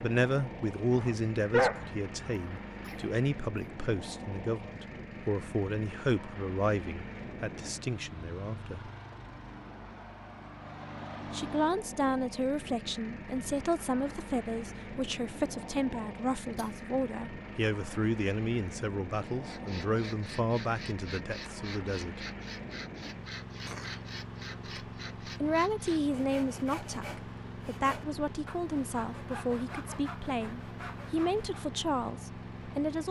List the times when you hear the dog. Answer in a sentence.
You can hear the dog from 0.9 to 2.4 s.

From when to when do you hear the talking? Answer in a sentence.
The talking can be heard from 0.0 to 8.9 s, from 11.3 to 22.2 s and from 25.4 to 33.0 s.